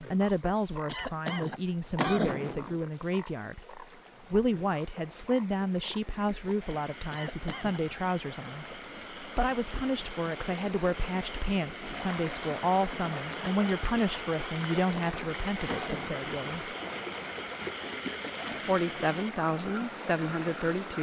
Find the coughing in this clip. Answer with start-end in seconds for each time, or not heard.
0.8-2.8, 7.1-7.8, 14.8-16.2.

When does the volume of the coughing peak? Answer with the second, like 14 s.
2 s.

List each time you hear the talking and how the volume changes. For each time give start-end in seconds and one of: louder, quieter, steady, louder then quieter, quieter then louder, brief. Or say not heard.
0.0-16.8 steady
18.6-20.9 brief.